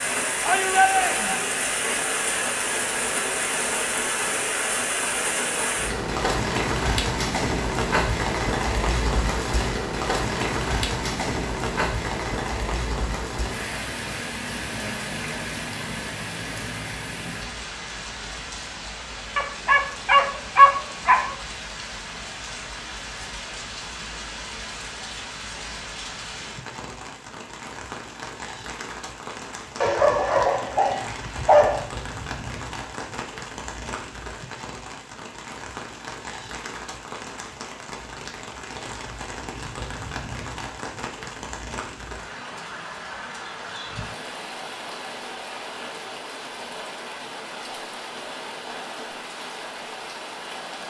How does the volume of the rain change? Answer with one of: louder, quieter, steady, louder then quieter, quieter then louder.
quieter.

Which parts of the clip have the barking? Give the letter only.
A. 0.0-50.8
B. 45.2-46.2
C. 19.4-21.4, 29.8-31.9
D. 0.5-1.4
C.